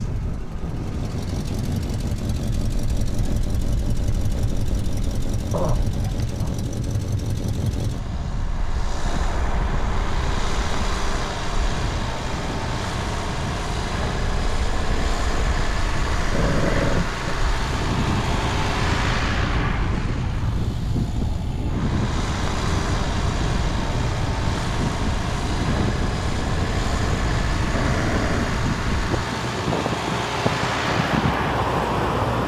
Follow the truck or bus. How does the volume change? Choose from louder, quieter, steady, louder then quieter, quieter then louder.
steady.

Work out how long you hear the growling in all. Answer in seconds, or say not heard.
3 s.